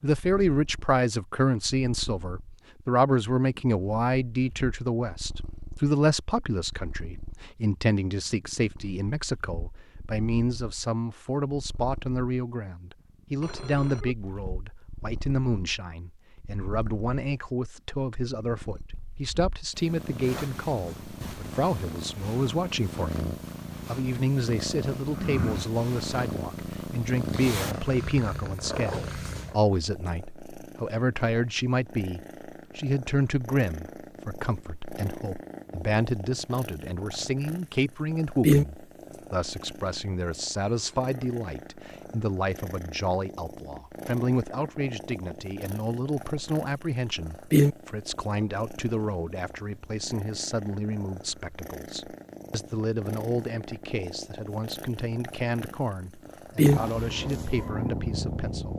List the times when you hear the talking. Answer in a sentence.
You can hear the talking from 0.0 to 58.7 s.